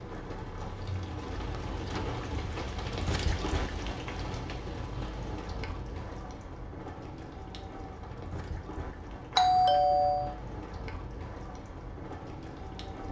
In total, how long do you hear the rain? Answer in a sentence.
You can hear the rain for 13 seconds altogether.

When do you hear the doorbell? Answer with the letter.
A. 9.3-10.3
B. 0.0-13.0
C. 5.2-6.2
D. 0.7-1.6
A.